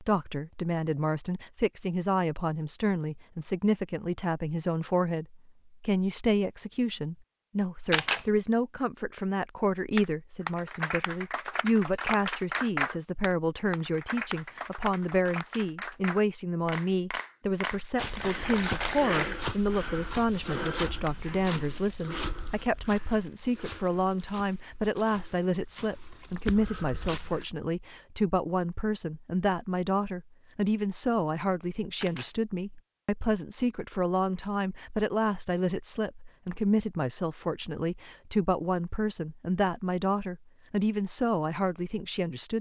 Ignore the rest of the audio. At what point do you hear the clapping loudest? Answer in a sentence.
The loudest moment of the clapping is at 13 seconds.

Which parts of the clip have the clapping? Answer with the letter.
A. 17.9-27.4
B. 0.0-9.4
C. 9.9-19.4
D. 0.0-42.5
C.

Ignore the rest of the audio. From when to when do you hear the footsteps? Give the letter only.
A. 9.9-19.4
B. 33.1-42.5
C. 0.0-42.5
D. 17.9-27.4
D.